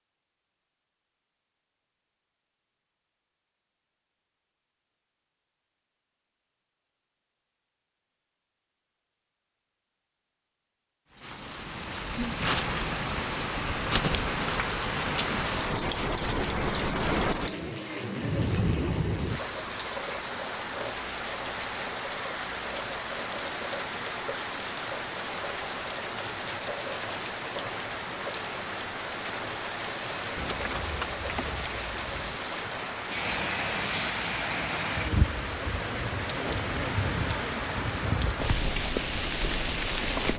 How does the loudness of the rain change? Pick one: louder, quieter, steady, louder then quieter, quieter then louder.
steady.